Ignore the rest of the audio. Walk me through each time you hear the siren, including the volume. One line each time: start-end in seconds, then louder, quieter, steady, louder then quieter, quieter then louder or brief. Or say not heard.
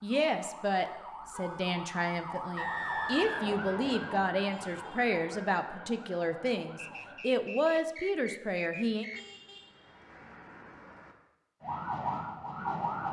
0.0-7.2 louder then quieter
11.6-13.0 brief.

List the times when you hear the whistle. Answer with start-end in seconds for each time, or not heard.
2.5-4.2, 6.8-9.3.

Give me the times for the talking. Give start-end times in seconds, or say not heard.
0.0-9.1.